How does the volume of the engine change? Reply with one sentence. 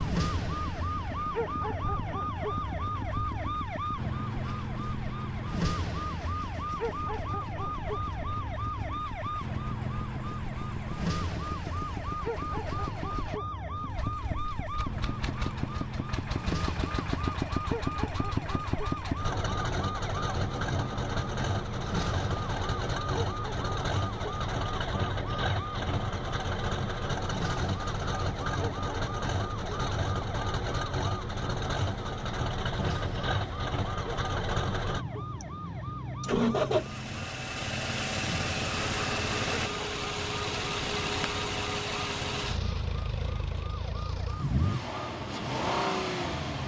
The volume of the engine goes up.